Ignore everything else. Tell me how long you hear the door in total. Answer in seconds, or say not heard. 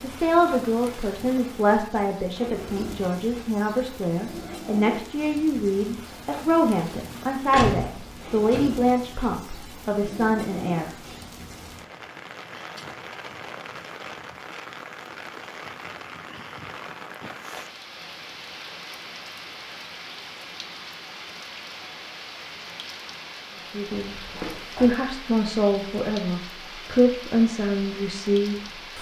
2 s.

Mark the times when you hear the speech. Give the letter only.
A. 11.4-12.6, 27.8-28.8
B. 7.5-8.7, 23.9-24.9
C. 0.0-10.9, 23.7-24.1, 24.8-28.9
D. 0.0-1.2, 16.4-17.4
C.